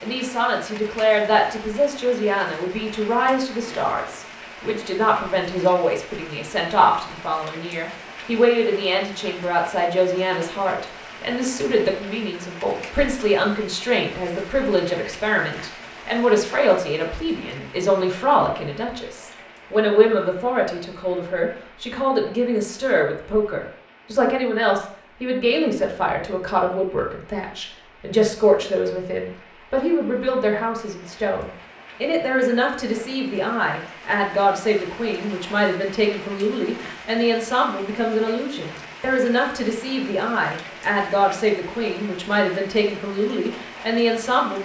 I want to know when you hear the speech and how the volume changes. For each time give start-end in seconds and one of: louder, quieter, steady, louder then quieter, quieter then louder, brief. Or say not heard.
0.0-44.5 steady.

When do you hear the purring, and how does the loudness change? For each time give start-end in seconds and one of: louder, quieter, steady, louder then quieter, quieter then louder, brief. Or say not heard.
not heard.